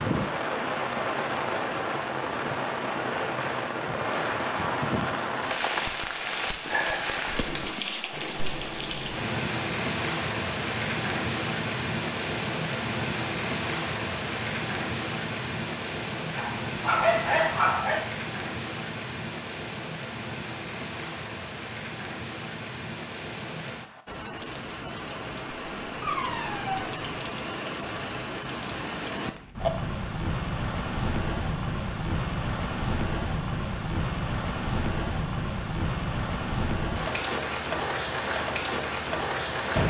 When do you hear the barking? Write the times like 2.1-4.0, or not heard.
16.3-18.0, 25.5-26.9.